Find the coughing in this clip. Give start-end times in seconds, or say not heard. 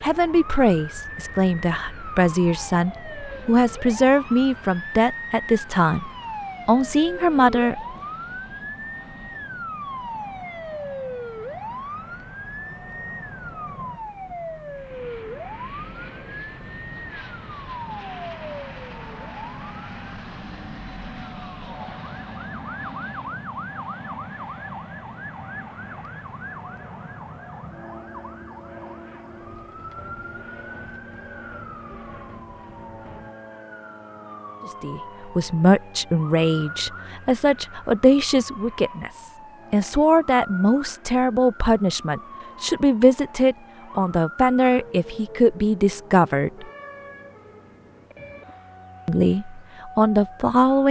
not heard.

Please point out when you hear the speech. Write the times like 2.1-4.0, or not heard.
0.0-7.8, 34.6-46.6, 49.0-50.8.